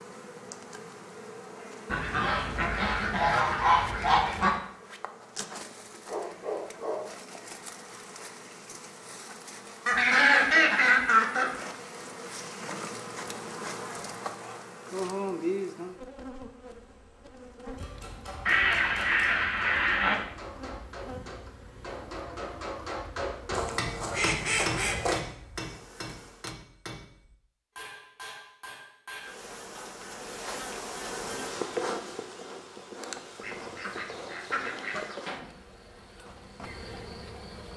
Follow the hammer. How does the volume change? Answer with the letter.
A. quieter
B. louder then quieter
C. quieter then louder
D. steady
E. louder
B.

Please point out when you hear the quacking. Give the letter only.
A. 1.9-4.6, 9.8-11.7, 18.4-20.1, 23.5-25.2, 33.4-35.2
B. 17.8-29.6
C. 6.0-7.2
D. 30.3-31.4
A.